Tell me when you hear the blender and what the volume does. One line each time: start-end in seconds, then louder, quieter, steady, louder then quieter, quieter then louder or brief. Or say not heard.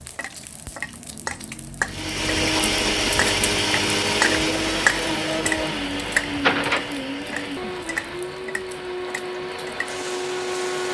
1.9-10.8 quieter.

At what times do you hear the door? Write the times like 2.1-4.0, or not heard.
6.3-7.0.